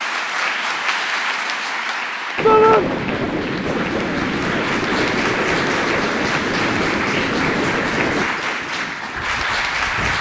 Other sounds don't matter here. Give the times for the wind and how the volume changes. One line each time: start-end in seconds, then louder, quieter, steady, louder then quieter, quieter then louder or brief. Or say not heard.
2.4-10.1 quieter.